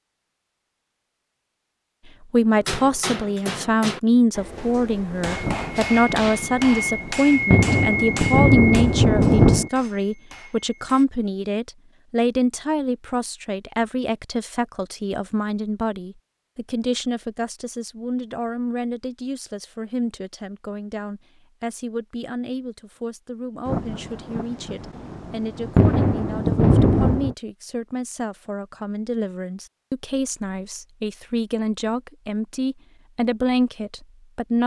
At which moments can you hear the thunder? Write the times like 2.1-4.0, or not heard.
5.4-9.7, 23.6-27.4.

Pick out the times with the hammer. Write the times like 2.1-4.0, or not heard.
2.5-11.1.